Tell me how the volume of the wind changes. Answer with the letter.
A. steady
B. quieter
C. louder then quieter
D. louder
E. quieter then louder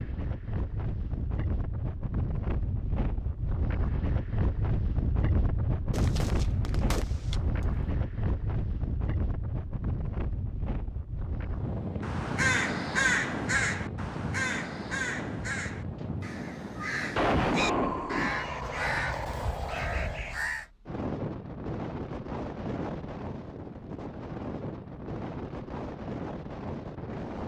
A.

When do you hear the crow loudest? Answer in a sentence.
The volume of the crow peaks at 13 seconds.